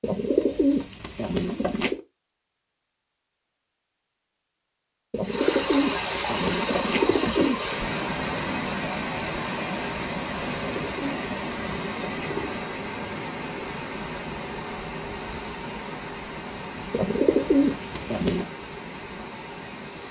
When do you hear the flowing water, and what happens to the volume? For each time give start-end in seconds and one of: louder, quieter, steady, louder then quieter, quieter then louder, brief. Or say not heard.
5.2-20.0 quieter.